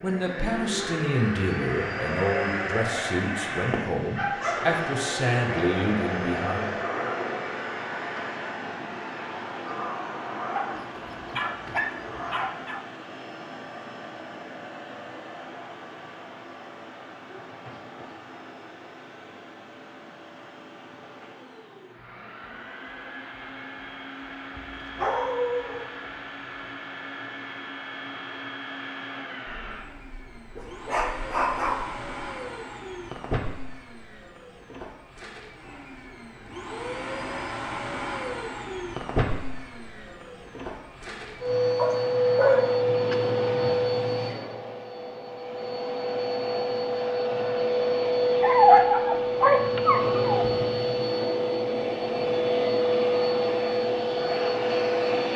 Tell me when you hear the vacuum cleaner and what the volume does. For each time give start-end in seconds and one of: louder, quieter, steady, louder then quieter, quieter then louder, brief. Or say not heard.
0.0-55.3 quieter then louder.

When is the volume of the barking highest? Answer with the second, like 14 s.
49 s.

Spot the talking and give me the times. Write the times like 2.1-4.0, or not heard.
0.0-6.8.